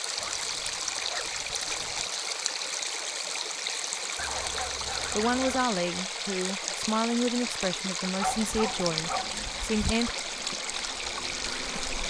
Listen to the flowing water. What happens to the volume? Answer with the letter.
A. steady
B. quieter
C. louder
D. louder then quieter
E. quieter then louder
A.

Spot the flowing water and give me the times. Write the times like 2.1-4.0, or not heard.
0.0-12.0.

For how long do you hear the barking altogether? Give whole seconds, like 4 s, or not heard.
5 s.